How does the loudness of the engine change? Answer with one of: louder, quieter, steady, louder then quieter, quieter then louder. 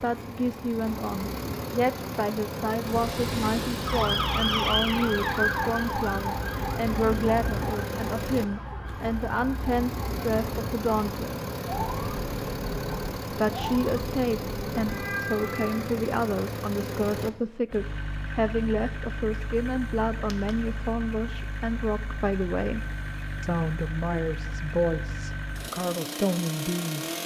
steady.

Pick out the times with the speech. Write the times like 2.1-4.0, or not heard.
0.0-11.4, 13.3-22.8, 23.4-27.1.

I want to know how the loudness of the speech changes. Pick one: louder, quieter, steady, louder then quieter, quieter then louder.
steady.